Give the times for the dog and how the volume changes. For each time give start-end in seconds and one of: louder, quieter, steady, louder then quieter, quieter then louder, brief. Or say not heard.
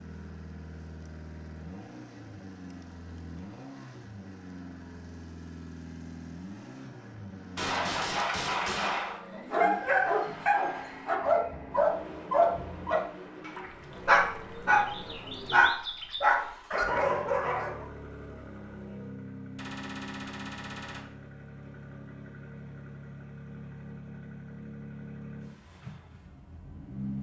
9.1-17.9 steady.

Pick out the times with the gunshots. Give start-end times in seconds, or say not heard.
7.5-9.2, 19.6-21.1.